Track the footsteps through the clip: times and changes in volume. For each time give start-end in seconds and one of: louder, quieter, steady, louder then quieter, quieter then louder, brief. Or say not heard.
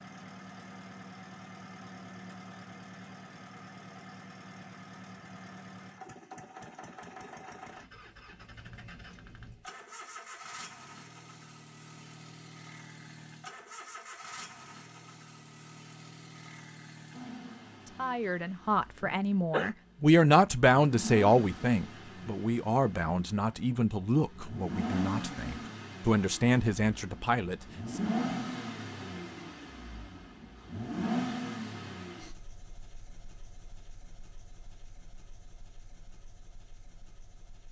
not heard.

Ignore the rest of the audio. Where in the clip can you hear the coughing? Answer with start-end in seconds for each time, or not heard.
19.0-19.7.